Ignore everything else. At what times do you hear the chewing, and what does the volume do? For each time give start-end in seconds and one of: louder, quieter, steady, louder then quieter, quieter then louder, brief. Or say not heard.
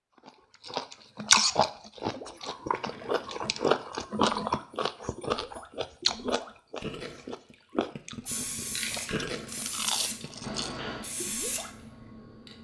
0.1-10.8 quieter.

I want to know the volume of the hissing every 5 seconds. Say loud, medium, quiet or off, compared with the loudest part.
off, loud, loud.